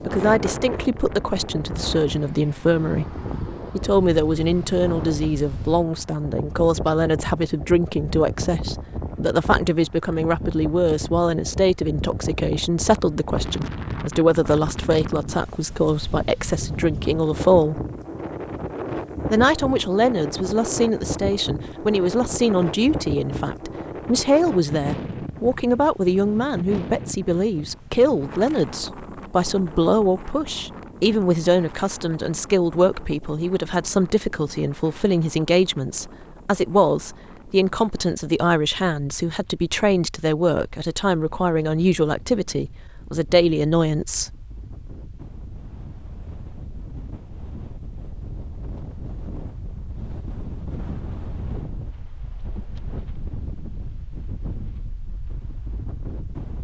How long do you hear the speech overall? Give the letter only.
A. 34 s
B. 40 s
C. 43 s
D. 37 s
C.